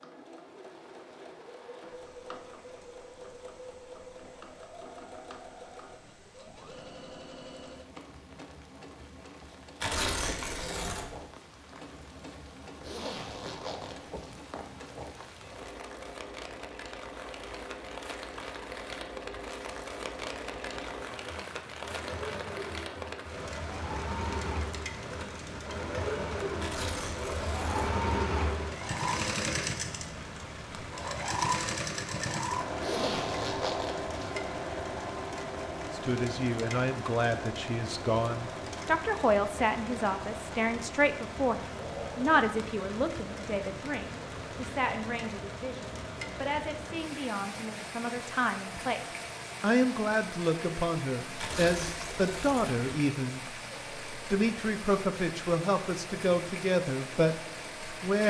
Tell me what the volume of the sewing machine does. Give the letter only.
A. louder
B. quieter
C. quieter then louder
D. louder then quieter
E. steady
D.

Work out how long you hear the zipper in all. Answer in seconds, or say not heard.
3 s.